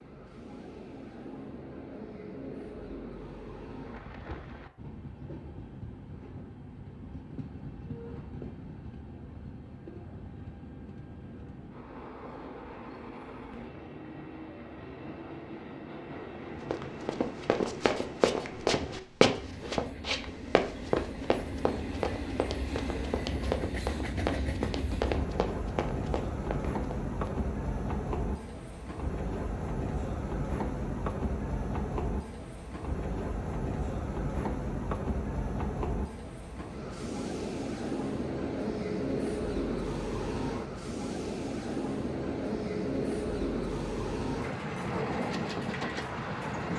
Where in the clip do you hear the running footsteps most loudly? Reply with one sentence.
The loudest moment of the running footsteps is at 19 seconds.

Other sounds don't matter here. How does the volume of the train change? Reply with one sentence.
The loudness of the train goes up.